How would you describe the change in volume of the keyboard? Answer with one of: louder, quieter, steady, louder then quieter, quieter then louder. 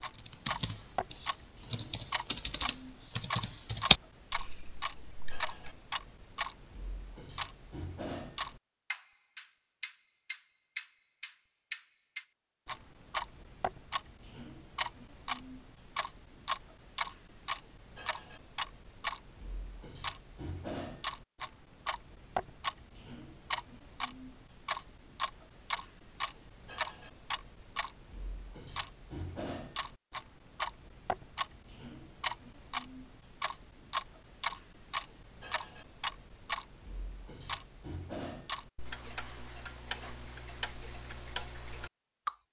louder then quieter.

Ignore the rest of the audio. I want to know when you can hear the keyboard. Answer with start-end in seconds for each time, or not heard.
0.1-5.8.